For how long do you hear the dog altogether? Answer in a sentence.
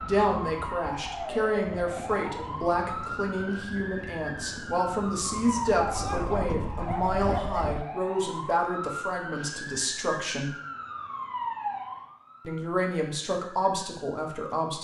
The dog can be heard for 2 seconds in total.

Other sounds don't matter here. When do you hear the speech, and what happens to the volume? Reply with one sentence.
You can hear the speech from 0.0 to 10.6 s, at a steady volume; and briefly from 12.4 to 14.7 s.